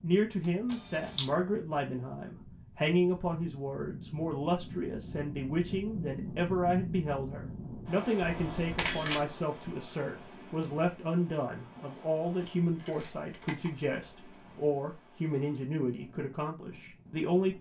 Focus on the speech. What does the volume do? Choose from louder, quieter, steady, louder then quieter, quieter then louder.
steady.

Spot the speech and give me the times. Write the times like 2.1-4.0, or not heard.
0.0-17.5.